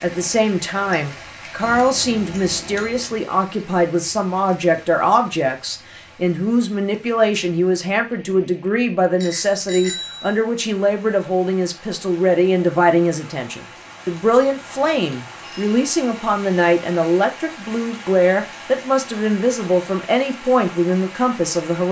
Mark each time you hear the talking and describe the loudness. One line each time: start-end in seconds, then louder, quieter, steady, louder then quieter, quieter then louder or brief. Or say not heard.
0.0-21.8 steady.